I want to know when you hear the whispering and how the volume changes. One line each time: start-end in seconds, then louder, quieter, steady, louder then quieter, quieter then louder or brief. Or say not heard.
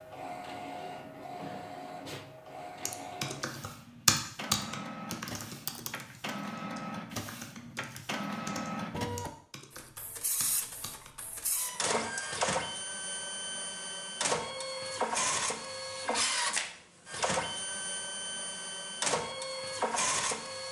not heard.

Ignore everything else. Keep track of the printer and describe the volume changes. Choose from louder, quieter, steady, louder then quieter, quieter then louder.
louder.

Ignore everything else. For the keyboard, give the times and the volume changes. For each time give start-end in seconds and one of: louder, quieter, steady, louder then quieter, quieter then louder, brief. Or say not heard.
2.9-11.1 quieter.